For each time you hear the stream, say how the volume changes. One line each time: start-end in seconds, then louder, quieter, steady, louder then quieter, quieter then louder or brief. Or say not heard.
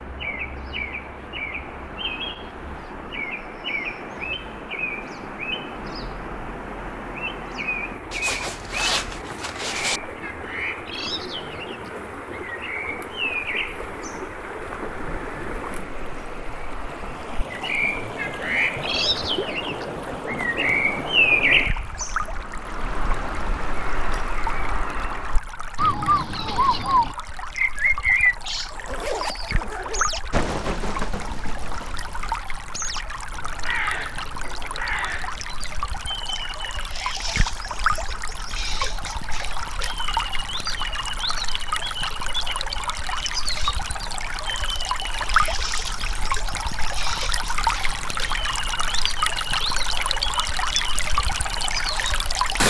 0.0-52.6 louder.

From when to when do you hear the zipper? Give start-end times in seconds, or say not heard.
8.1-10.0, 28.7-30.1.